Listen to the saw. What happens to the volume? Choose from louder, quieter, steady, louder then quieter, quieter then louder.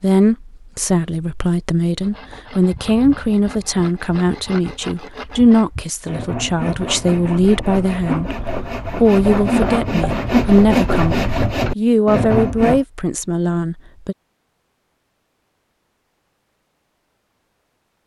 louder.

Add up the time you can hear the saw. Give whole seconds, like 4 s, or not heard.
11 s.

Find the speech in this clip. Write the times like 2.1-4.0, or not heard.
0.0-14.2.